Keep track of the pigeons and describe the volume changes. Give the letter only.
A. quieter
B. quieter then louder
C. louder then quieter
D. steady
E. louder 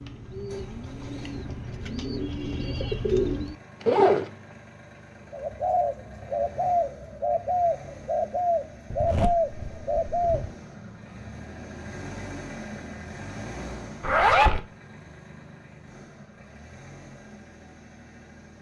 E.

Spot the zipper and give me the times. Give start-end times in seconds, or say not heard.
3.8-4.3, 8.9-10.5, 14.0-14.6.